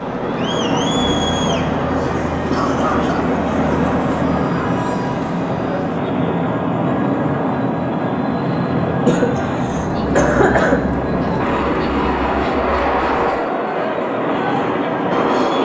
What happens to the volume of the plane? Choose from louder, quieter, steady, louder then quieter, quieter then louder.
steady.